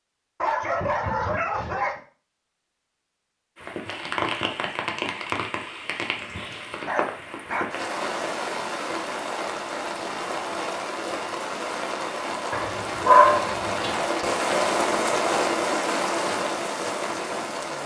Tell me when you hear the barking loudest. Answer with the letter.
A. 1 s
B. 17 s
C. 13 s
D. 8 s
C.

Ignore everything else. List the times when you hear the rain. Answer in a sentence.
The rain can be heard from 3.5 to 17.8 s.